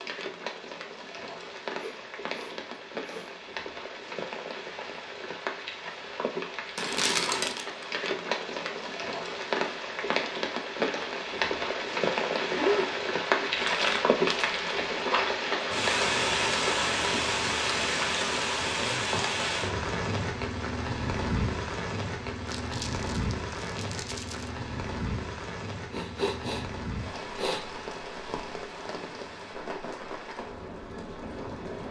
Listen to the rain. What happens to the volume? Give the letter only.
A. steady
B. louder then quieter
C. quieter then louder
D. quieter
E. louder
B.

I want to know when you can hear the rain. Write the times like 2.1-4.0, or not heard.
0.0-31.8.